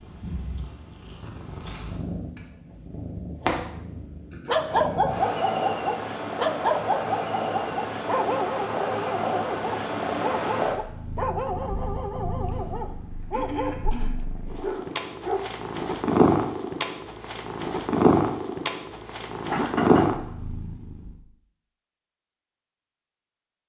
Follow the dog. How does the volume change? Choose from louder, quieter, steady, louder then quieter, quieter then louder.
quieter.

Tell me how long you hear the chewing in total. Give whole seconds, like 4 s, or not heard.
not heard.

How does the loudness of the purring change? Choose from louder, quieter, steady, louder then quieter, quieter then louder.
louder.